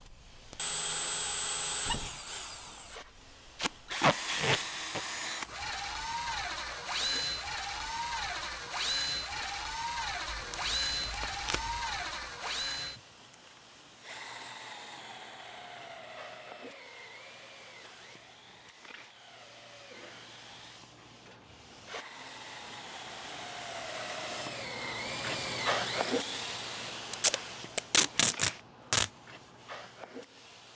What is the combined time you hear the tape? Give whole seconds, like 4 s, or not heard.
5 s.